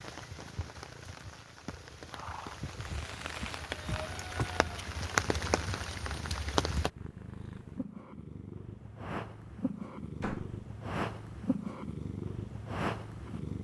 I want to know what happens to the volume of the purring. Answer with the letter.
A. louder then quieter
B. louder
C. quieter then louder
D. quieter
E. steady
B.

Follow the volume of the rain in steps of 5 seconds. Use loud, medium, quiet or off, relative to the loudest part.
medium, loud, off.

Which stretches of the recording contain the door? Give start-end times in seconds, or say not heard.
2.9-4.5, 10.2-10.6.